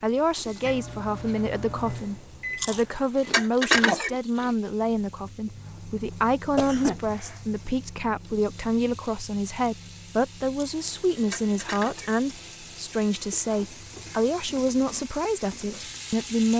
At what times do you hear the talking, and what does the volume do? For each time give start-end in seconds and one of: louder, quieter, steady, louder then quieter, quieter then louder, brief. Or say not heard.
0.0-16.5 steady.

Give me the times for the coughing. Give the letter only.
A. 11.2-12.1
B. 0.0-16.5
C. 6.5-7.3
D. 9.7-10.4
C.